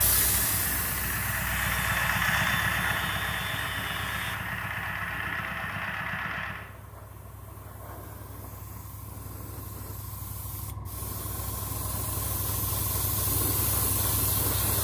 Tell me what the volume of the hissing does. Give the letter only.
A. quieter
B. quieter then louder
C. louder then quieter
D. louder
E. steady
B.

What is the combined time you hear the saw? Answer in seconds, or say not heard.
3 s.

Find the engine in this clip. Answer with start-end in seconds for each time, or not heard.
0.0-6.7.